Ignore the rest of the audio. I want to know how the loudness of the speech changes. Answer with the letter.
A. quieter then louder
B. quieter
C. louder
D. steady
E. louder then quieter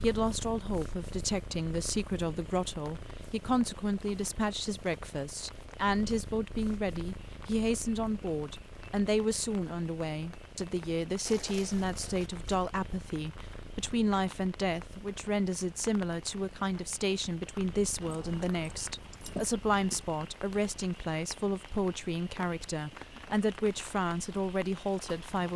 D.